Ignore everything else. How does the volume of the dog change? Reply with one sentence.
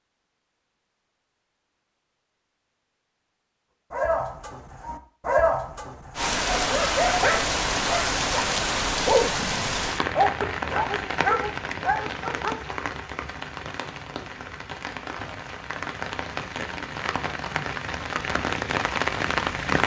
The volume of the dog stays about the same.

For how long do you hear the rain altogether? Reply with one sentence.
The rain can be heard for 14 seconds in total.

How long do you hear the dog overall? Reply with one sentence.
The dog can be heard for 9 seconds in total.